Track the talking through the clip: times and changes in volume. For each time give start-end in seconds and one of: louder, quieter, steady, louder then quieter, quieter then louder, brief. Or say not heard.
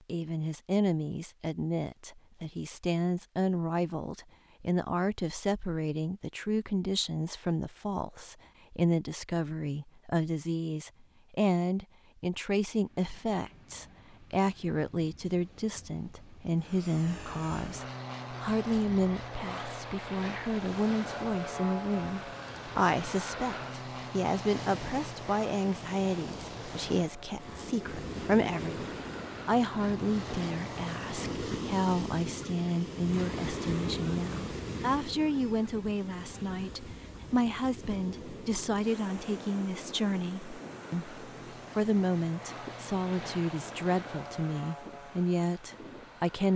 0.1-46.5 steady.